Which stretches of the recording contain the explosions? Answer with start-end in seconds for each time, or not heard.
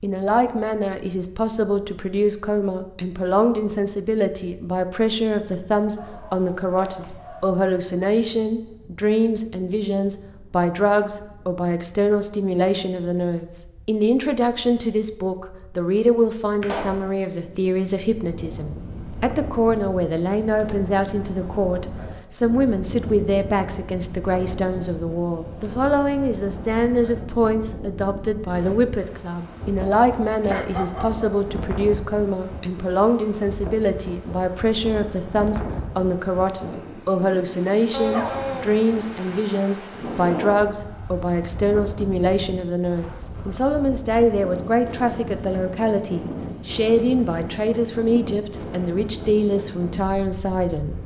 16.6-17.1.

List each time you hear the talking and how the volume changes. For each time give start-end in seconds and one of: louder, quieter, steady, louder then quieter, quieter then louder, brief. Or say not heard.
0.0-51.0 steady.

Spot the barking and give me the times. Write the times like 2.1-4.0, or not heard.
6.0-7.6, 30.4-31.4, 37.9-38.8.